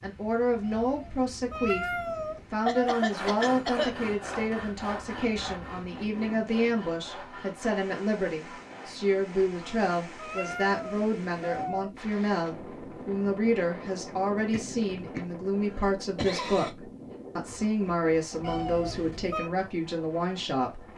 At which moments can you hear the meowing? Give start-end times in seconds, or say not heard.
0.6-3.0, 9.3-11.9, 18.4-19.5.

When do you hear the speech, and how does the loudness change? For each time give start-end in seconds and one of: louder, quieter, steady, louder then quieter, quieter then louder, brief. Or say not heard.
0.0-20.9 steady.